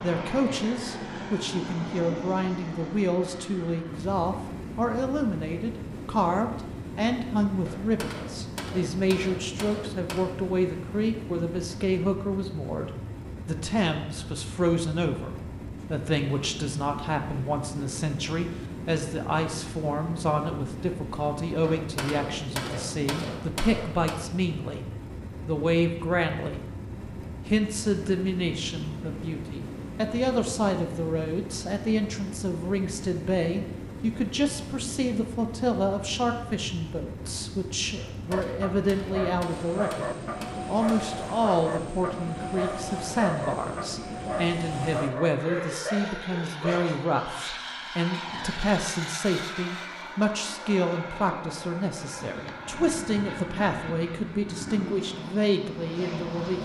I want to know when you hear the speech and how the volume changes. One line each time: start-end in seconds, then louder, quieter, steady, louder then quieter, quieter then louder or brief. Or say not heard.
0.0-24.9 steady
25.4-26.6 brief
27.4-56.5 steady.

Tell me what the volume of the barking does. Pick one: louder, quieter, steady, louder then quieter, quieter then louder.
steady.